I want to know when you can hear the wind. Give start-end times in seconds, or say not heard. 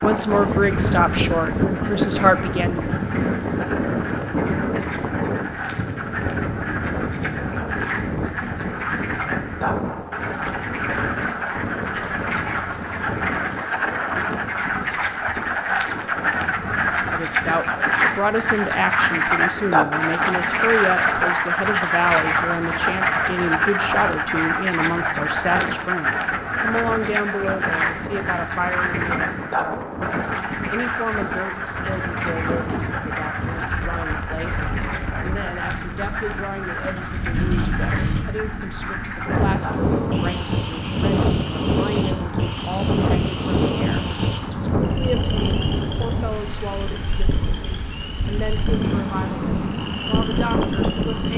0.0-51.3.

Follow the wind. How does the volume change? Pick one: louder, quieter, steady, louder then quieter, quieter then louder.
quieter then louder.